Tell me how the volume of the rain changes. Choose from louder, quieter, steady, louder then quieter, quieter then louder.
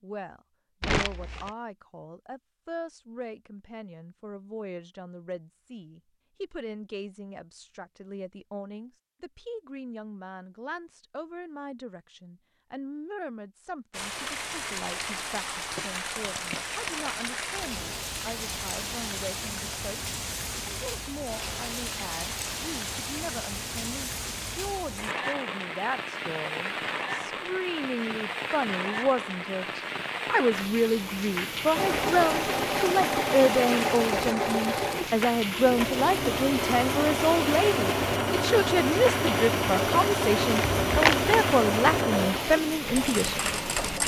steady.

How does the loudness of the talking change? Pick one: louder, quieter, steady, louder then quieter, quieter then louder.
louder.